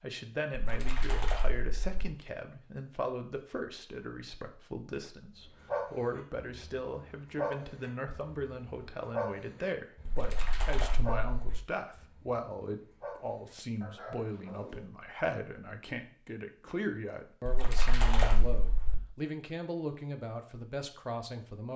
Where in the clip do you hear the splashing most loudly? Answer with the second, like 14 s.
18 s.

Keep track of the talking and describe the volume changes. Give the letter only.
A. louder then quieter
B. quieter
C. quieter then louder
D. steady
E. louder
D.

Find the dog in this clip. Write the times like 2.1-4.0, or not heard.
5.5-14.8.